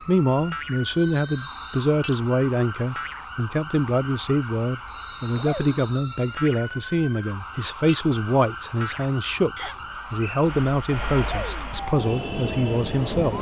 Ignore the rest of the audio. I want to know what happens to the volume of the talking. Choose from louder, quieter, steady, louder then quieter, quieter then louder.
steady.